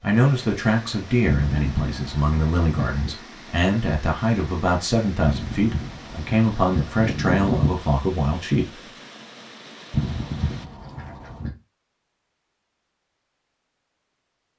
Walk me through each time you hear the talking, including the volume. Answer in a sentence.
The talking can be heard from 0.0 to 8.8 s, at a steady volume.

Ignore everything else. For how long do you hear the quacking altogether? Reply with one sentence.
You can hear the quacking for 6 seconds altogether.